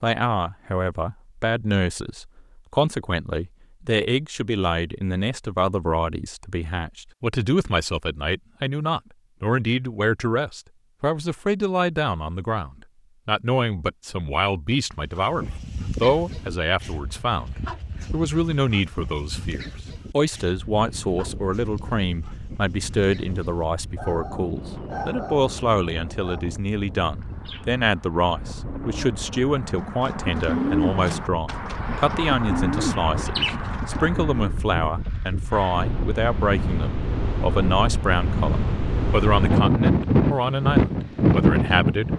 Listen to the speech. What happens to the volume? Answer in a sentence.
The volume of the speech stays about the same.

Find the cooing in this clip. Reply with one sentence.
You can hear the cooing from 27.1 to 34.6 s.